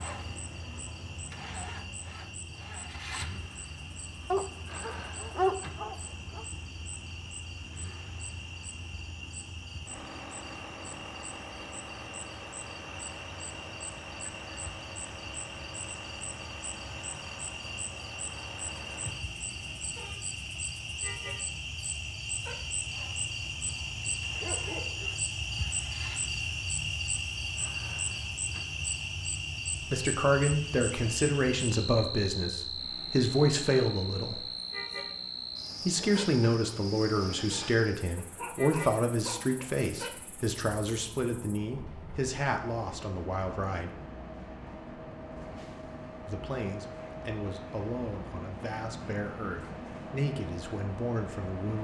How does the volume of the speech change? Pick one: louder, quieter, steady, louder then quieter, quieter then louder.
quieter.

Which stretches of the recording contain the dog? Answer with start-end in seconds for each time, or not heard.
4.3-6.5, 24.0-25.2, 38.1-39.7.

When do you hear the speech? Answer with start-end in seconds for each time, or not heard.
29.8-34.4, 35.9-44.0, 46.2-51.8.